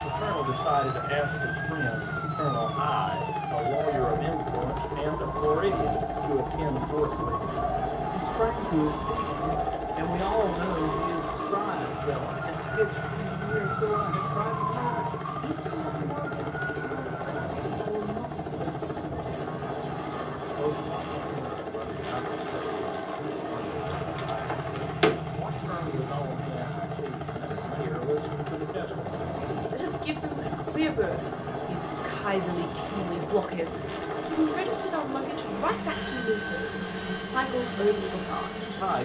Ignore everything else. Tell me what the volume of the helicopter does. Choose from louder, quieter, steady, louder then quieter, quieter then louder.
steady.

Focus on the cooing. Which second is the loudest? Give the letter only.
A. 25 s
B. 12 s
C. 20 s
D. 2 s
A.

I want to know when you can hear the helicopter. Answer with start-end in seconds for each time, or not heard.
0.0-39.0.